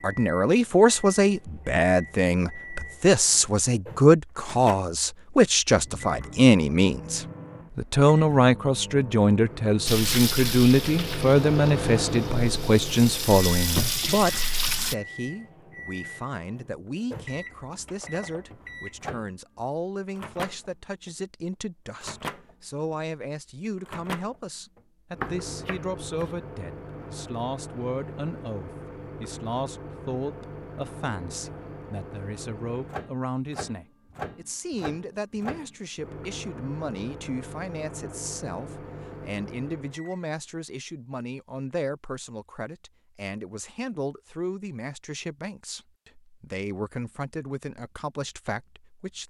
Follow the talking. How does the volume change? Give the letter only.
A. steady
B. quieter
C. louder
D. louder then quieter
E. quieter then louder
B.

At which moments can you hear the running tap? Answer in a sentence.
You can hear the running tap from 9.8 to 14.9 s.